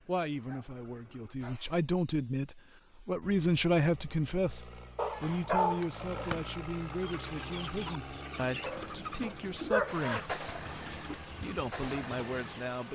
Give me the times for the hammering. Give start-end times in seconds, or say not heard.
5.8-6.5.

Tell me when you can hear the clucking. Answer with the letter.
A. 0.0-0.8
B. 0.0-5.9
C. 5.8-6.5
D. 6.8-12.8
D.